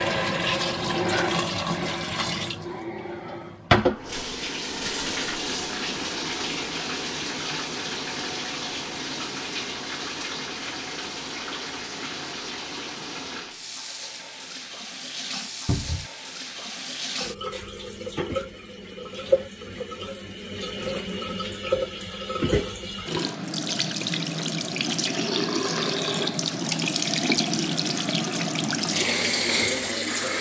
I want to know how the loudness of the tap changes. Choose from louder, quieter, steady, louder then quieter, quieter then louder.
quieter then louder.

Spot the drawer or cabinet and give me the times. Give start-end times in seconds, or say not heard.
15.7-16.1.